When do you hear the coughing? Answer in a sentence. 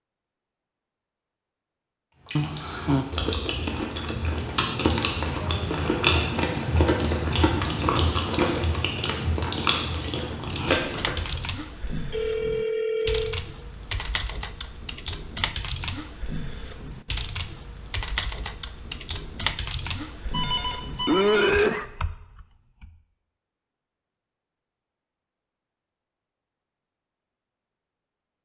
You can hear the coughing from 5.4 to 6.5 s and from 21.1 to 21.9 s.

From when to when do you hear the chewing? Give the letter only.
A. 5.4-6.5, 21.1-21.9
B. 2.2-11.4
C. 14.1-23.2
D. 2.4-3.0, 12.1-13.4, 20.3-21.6
B.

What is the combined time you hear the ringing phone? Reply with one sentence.
You can hear the ringing phone for 3 seconds altogether.